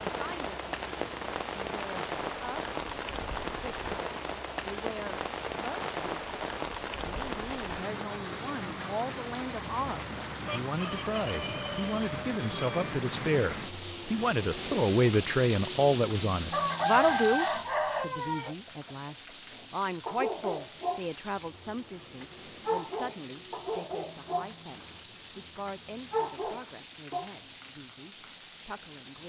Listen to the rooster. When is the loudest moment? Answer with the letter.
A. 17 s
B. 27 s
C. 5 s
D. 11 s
A.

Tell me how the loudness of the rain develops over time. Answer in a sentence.
The loudness of the rain goes down.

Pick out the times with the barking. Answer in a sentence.
You can hear the barking from 19.6 to 27.3 s.